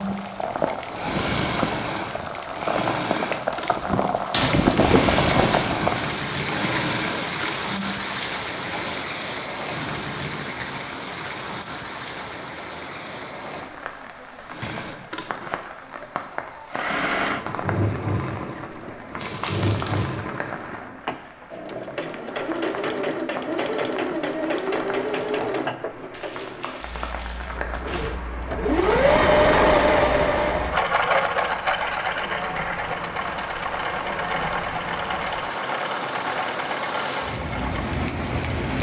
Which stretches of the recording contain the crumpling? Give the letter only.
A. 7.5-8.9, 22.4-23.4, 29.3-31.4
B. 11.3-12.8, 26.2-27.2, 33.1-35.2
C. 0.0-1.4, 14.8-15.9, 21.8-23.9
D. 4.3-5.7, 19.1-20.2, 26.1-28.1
D.